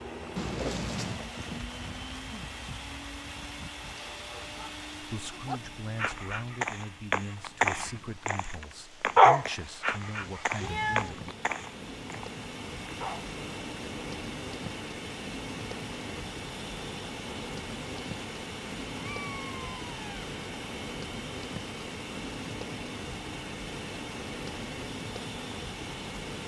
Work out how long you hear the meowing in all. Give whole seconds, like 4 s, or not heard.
3 s.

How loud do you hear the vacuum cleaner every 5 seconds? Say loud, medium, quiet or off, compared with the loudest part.
loud, medium, loud, loud, loud, loud.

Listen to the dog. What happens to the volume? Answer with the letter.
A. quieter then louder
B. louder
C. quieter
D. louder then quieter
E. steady
D.